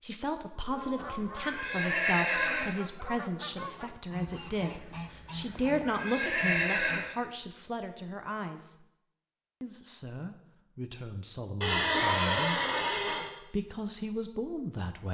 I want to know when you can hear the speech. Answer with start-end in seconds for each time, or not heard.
0.0-8.8, 9.6-12.6, 13.4-15.0.